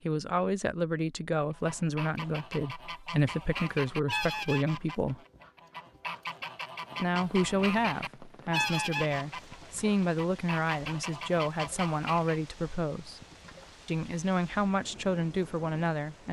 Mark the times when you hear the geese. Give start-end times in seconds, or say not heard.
1.5-12.4.